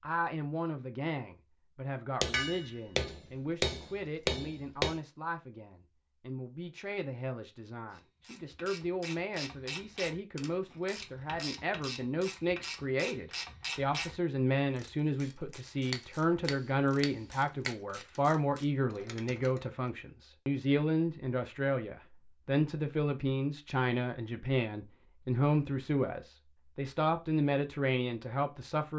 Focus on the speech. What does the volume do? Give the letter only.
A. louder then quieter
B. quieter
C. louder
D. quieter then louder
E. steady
C.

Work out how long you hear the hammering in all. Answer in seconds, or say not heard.
5 s.